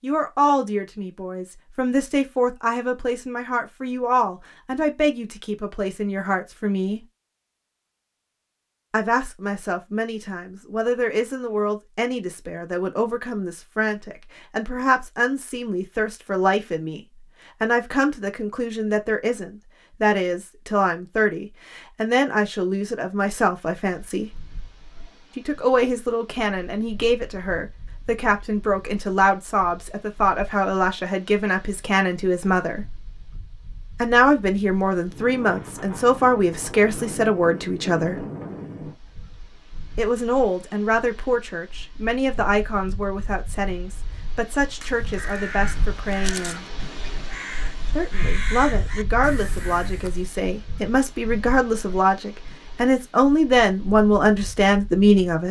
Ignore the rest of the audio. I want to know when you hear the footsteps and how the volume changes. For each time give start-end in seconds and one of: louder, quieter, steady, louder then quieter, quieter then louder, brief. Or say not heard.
not heard.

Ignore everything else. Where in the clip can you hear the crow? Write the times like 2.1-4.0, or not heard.
44.8-50.2.